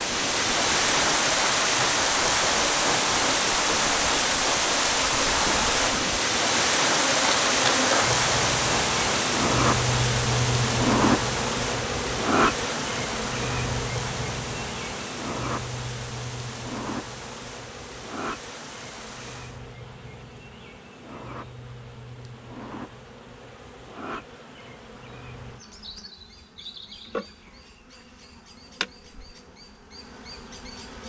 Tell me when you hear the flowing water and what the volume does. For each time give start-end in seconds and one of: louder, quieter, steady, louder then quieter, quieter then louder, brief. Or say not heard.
0.0-19.6 quieter.